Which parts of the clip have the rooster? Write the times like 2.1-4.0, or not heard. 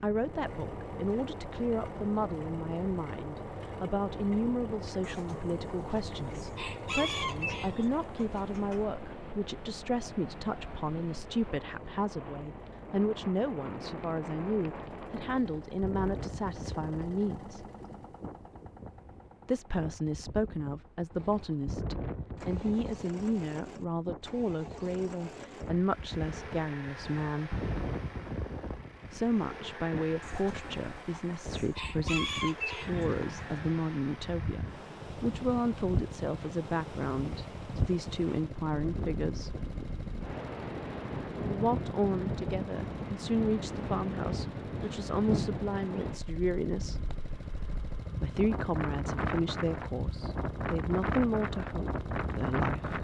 5.0-8.8, 30.2-33.6.